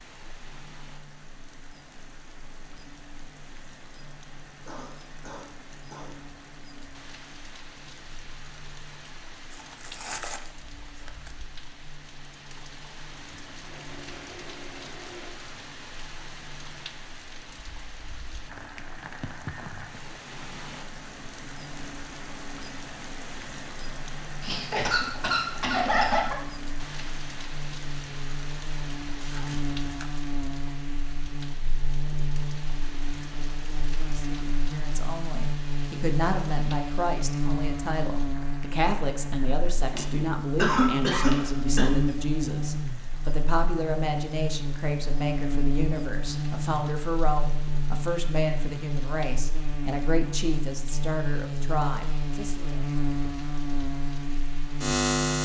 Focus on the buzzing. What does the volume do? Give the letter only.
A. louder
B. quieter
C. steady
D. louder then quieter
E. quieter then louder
A.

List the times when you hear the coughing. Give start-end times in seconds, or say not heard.
4.7-6.2, 24.4-26.4, 39.9-41.9.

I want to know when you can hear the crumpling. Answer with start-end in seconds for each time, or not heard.
9.5-11.3, 29.2-30.3.